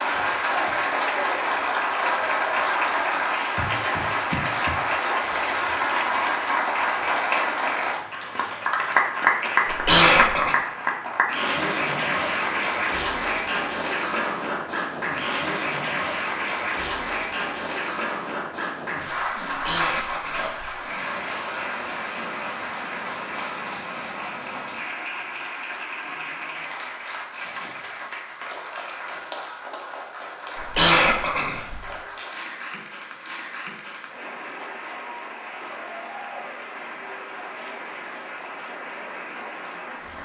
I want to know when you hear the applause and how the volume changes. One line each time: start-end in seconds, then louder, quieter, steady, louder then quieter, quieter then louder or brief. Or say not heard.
0.0-40.1 quieter.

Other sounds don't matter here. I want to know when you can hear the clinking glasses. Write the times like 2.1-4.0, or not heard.
not heard.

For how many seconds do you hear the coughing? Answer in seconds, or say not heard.
4 s.